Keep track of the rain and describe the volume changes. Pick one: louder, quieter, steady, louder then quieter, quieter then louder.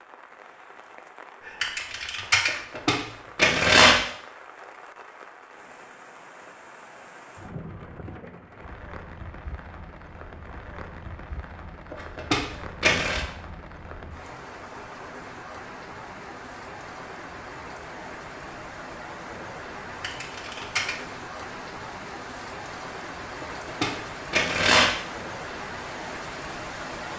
louder.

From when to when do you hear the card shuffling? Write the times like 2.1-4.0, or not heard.
2.5-4.0, 11.9-13.2, 23.4-24.9.